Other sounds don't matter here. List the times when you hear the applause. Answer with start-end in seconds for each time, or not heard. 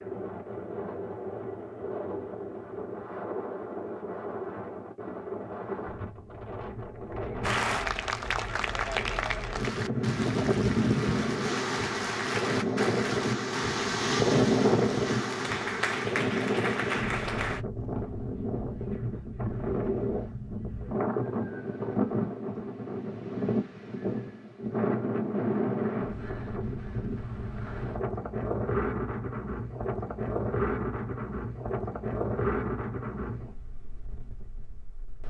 7.4-17.6.